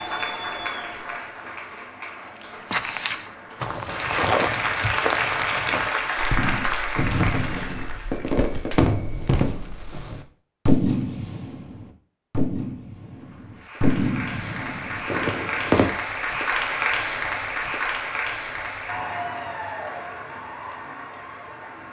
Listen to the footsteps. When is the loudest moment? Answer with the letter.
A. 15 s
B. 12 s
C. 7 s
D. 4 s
D.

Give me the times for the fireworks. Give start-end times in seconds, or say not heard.
6.3-15.9.